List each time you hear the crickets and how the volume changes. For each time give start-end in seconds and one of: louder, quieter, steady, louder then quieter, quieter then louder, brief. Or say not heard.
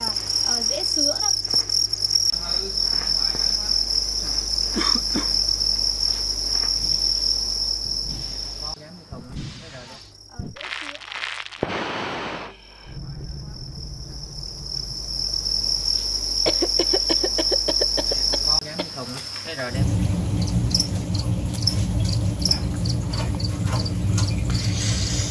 0.0-25.2 quieter then louder.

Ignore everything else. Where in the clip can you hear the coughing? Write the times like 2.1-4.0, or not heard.
4.8-5.3, 16.4-18.9.